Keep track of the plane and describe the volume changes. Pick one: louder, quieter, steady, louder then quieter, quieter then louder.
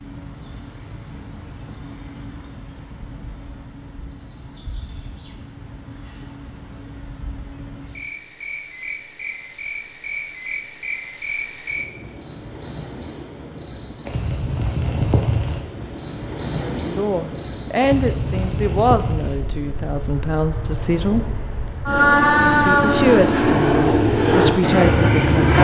louder.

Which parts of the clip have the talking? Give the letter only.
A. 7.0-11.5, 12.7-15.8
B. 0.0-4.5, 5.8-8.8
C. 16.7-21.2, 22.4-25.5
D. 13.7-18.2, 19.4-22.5
C.